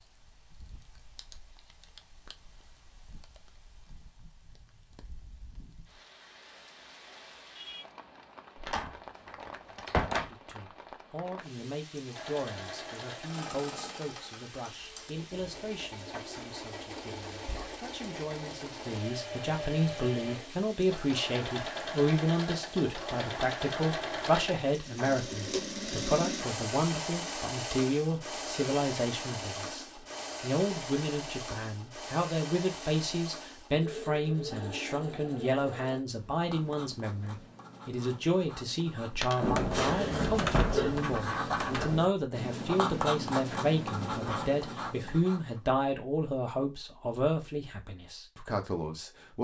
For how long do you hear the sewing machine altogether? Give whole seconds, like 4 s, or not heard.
24 s.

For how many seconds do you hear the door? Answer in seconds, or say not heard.
5 s.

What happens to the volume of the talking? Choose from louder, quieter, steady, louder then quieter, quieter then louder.
louder.